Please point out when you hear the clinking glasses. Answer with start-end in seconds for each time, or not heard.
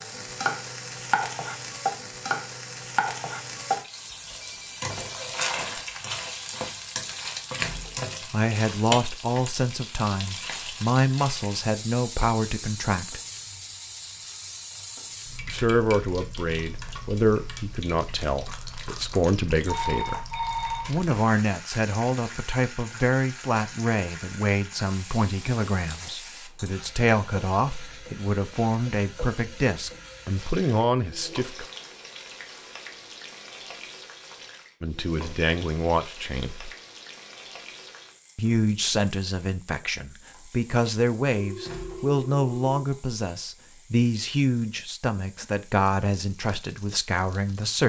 not heard.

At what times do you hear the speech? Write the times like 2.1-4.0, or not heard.
8.3-13.2, 15.4-20.2, 20.9-31.6, 34.8-36.7, 38.4-47.8.